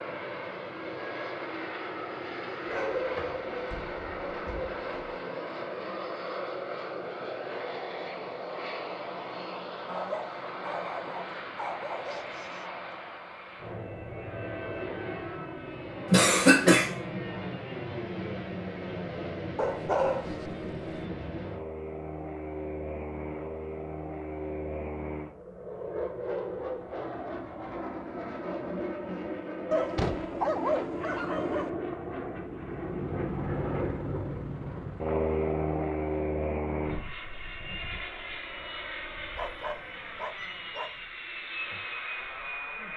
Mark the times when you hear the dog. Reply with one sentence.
You can hear the dog from 2.6 to 5.2 s, from 9.8 to 12.7 s, from 19.6 to 21.0 s, from 29.7 to 31.7 s and from 39.4 to 41.0 s.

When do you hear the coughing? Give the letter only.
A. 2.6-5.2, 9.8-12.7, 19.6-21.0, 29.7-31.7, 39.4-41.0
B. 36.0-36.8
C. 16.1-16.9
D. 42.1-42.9
C.